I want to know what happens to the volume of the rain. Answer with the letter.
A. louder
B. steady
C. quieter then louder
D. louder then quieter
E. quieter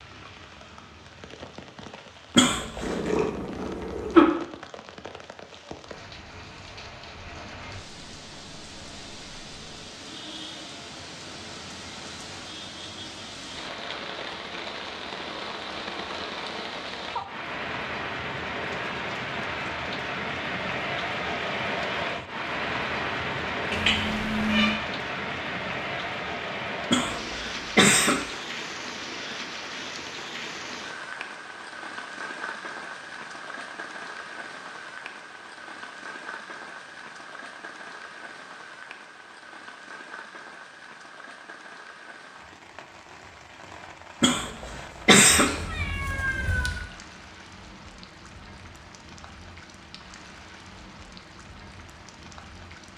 D.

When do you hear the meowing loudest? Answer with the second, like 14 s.
4 s.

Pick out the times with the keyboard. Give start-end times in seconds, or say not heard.
not heard.